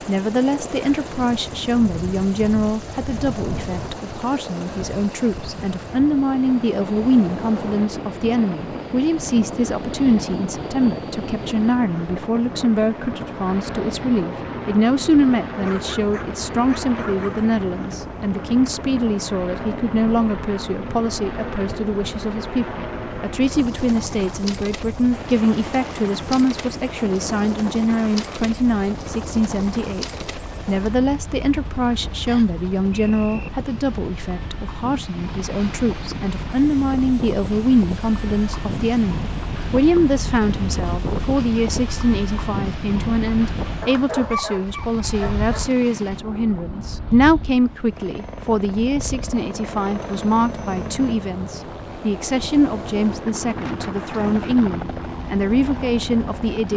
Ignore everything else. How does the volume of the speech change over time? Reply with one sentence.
The volume of the speech stays about the same.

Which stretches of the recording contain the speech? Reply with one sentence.
The speech can be heard from 0.1 to 56.7 s.